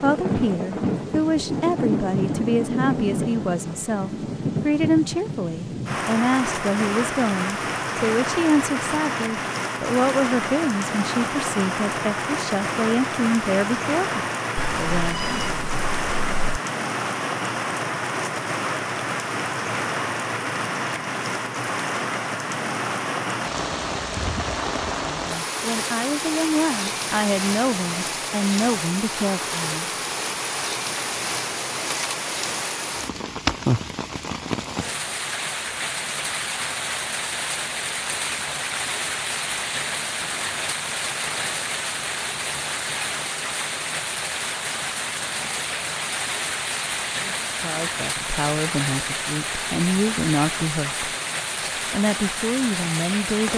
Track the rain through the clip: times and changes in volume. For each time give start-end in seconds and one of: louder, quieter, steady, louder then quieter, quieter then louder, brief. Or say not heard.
0.0-53.5 steady.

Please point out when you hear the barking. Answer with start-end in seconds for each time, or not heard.
not heard.